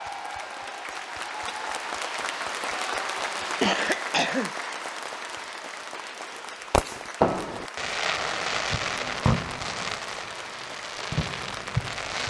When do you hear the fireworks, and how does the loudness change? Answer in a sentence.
You can hear the fireworks from 6.7 to 12.2 s, getting quieter then louder.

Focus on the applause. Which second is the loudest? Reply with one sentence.
The loudest moment of the applause is at 3 seconds.